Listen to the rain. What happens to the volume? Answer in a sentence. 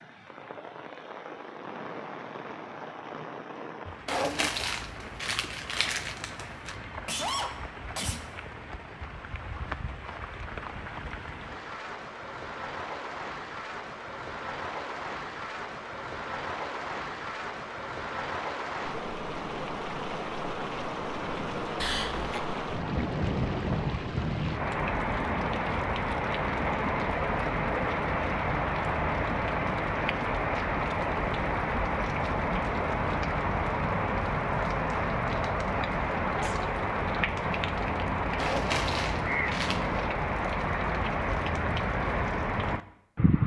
The loudness of the rain goes up.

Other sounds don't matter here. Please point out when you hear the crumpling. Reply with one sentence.
You can hear the crumpling from 4.0 to 6.8 s and from 38.4 to 39.9 s.